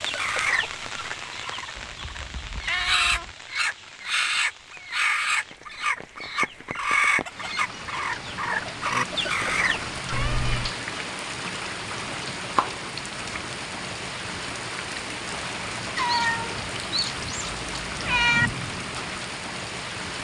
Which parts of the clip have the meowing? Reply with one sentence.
The meowing can be heard from 1.8 to 3.4 s, from 10.1 to 10.7 s and from 15.9 to 18.5 s.